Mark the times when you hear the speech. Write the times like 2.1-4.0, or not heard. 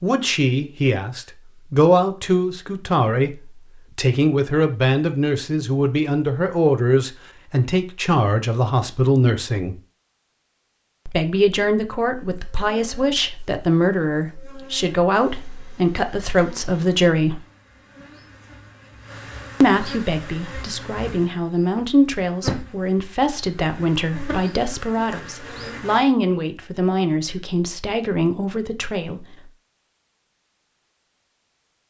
0.0-9.8, 11.1-17.4, 19.6-29.2.